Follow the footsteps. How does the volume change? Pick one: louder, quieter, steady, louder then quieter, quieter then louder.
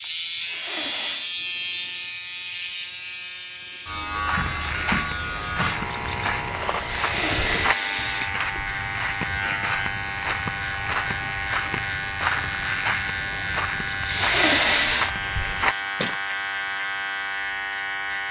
steady.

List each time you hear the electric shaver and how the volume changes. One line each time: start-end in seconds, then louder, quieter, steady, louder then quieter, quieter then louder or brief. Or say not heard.
0.0-18.2 steady.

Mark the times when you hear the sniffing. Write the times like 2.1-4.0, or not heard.
0.4-1.4, 6.8-8.4, 14.1-15.2.